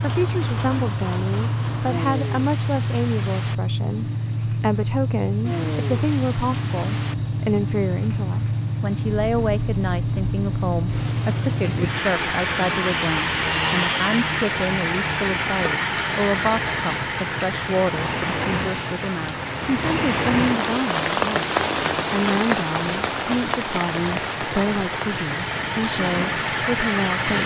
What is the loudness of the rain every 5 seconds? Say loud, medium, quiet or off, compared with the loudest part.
medium, medium, medium, medium, loud, medium.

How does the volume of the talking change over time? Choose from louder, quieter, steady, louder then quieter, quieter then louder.
steady.